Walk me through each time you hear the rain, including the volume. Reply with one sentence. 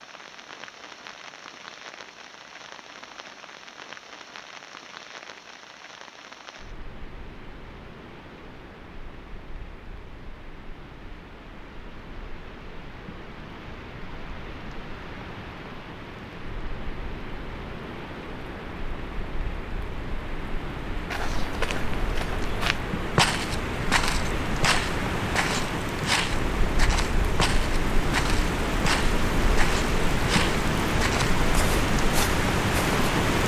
You can hear the rain from 0.0 to 33.4 s, getting louder.